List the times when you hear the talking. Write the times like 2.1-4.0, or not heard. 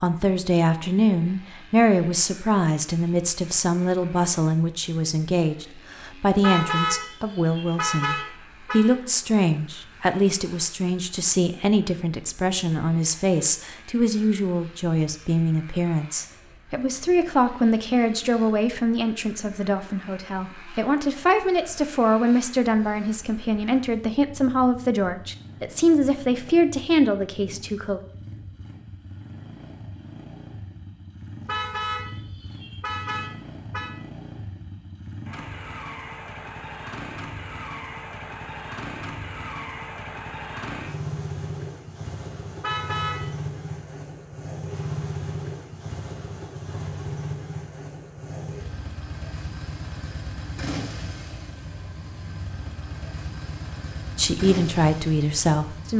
0.0-28.0, 54.1-55.9.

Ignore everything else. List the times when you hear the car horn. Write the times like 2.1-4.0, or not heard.
6.4-8.8, 31.4-33.9, 42.6-43.3.